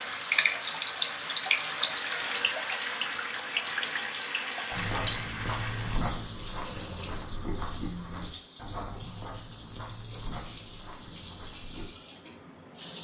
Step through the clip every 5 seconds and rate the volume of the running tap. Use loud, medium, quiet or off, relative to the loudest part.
loud, medium, medium.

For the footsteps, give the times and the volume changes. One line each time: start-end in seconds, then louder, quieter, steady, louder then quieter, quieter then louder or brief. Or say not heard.
4.7-11.9 quieter.